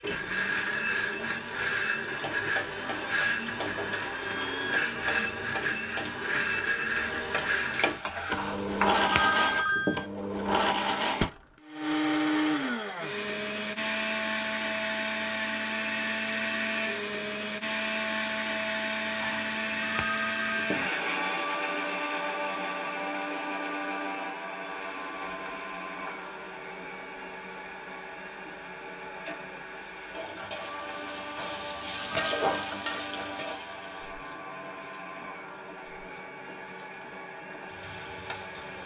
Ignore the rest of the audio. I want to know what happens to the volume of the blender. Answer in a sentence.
The loudness of the blender goes down.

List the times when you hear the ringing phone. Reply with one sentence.
The ringing phone can be heard from 8.3 to 10.1 s, from 19.2 to 20.9 s and from 31.4 to 32.5 s.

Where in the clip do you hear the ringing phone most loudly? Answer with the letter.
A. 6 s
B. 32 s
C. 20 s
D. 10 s
D.